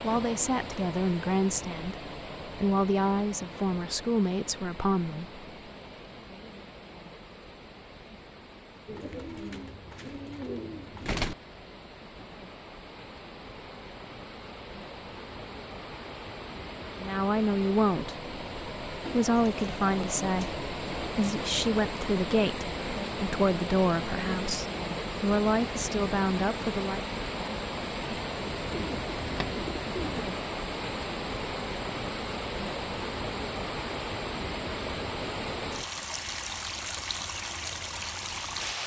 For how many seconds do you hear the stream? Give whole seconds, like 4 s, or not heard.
39 s.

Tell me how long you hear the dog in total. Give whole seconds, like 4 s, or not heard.
not heard.